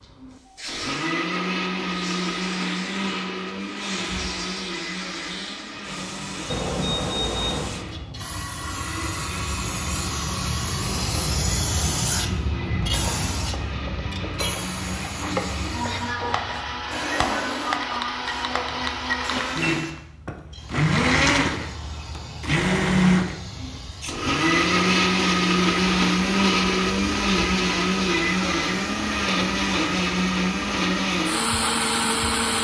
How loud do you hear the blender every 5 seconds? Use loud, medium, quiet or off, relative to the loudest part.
medium, quiet, quiet, medium, loud, loud, loud.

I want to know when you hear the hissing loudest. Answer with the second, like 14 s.
12 s.